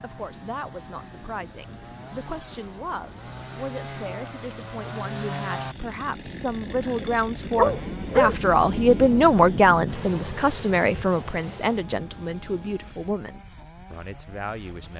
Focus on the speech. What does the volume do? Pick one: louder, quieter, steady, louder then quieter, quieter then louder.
louder then quieter.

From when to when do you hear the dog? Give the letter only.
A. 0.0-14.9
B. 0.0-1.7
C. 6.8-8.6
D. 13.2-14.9
C.